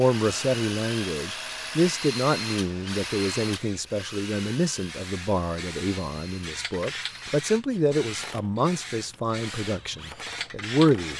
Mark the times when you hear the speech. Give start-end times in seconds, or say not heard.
0.0-11.1.